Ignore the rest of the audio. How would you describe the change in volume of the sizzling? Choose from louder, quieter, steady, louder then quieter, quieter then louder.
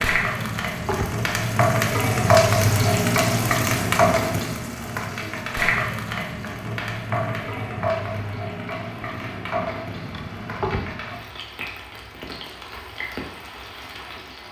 quieter.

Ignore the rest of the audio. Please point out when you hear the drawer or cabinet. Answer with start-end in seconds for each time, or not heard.
0.2-1.1, 9.9-10.9.